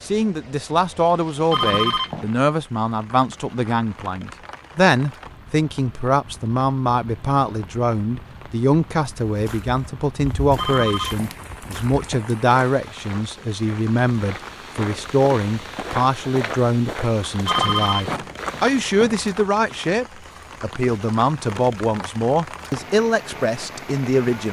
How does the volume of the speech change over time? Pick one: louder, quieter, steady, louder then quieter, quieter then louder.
steady.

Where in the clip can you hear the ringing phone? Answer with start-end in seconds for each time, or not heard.
1.5-2.3, 10.6-12.3, 17.4-19.2.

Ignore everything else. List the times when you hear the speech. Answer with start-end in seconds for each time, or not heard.
0.0-24.4.